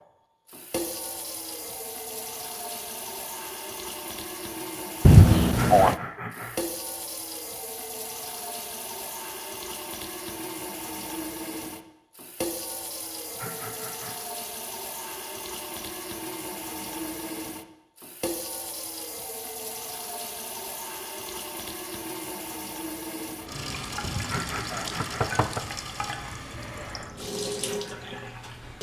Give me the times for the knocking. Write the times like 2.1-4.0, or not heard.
5.0-6.0, 24.0-25.6.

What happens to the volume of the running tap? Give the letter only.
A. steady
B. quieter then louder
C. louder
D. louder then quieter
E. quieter
A.